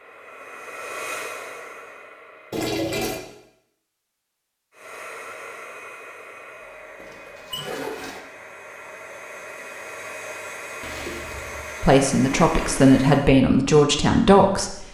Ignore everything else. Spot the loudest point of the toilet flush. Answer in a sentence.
The volume of the toilet flush peaks at 3 seconds.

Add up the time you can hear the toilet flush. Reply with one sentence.
The toilet flush can be heard for 4 seconds in total.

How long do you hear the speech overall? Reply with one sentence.
You can hear the speech for 3 seconds altogether.